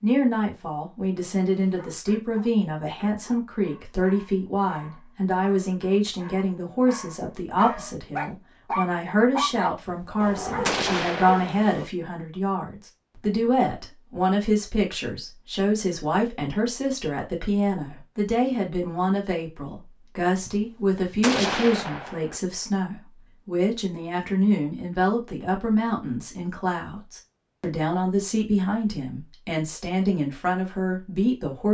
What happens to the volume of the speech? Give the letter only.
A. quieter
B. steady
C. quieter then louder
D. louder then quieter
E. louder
B.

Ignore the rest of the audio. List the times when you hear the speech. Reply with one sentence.
You can hear the speech from 0.0 to 31.6 s.